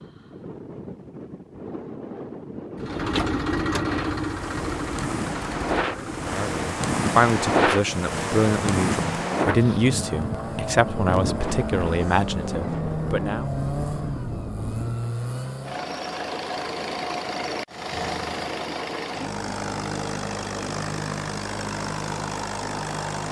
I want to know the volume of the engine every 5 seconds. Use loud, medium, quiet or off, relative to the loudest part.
loud, medium, loud, loud, loud.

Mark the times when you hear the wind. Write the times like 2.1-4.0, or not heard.
0.0-15.1.